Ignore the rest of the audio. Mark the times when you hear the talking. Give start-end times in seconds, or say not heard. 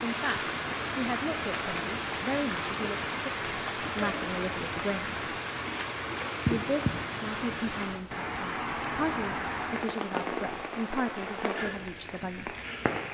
0.0-5.4, 6.5-12.5.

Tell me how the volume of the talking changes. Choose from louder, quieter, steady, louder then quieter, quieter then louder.
steady.